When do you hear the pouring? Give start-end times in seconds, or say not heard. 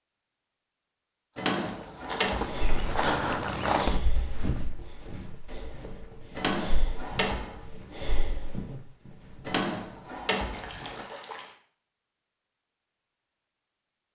10.5-11.6.